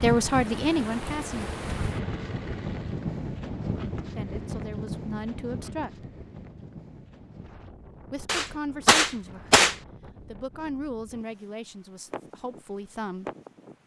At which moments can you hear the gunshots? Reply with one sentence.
You can hear the gunshots from 8.2 to 9.8 s.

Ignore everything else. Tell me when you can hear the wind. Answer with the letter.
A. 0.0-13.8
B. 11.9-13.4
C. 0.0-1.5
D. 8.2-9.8
A.